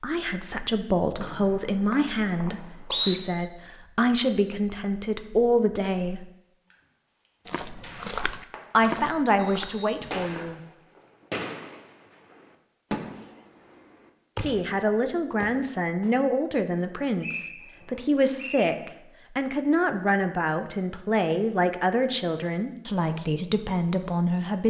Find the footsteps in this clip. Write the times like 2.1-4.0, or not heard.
7.5-10.6.